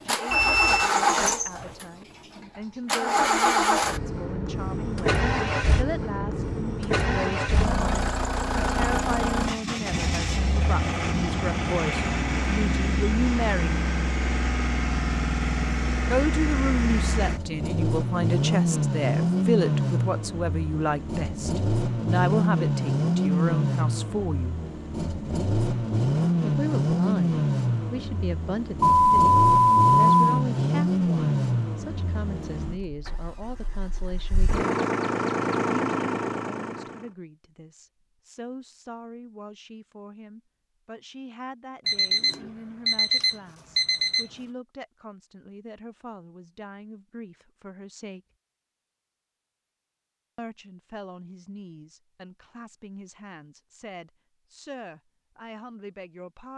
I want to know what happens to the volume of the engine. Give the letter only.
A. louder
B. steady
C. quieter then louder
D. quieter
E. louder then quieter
B.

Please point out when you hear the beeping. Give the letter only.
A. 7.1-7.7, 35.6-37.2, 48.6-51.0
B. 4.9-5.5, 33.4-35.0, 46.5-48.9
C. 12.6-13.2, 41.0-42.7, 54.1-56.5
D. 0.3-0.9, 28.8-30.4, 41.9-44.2
D.